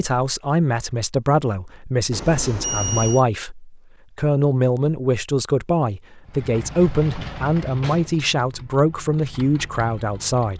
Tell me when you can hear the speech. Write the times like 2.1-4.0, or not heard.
0.0-10.5.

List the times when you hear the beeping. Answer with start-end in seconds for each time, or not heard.
2.1-3.2.